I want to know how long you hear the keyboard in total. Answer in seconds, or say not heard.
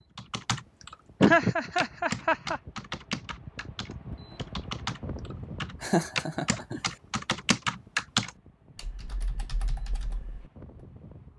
10 s.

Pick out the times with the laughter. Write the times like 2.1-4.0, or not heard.
1.2-2.6, 5.8-6.9.